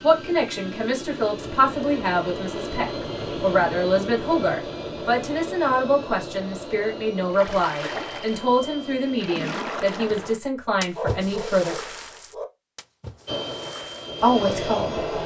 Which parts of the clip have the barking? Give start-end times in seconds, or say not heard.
10.9-12.4.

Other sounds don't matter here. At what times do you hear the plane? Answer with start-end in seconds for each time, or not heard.
0.0-10.3, 13.2-15.2.